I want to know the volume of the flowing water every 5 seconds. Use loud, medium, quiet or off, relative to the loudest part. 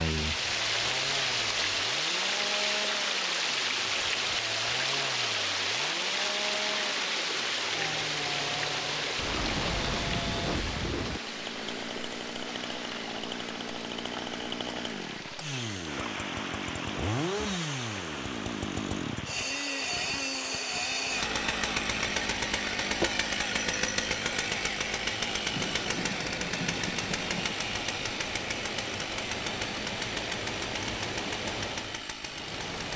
loud, loud, medium, medium, quiet, medium, medium.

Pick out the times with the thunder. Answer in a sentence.
The thunder can be heard from 9.2 to 11.2 s and from 25.5 to 27.6 s.